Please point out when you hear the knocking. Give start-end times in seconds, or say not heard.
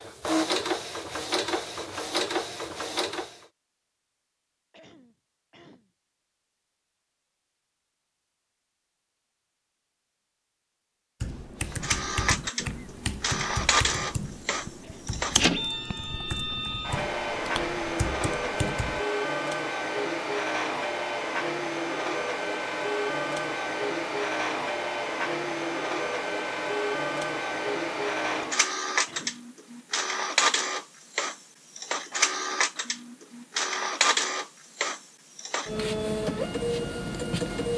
not heard.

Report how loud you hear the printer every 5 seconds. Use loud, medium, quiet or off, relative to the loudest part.
loud, off, loud, loud, loud, loud, loud, loud.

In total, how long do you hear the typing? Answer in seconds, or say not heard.
8 s.